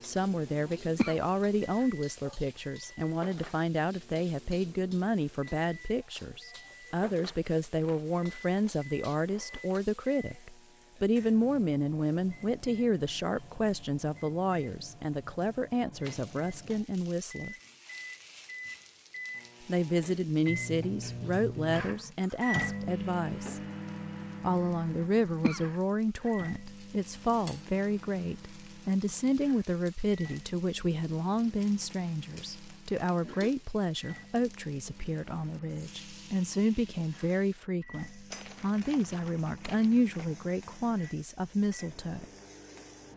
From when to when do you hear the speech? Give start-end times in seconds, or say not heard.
0.0-17.6, 19.6-23.6, 24.4-42.2.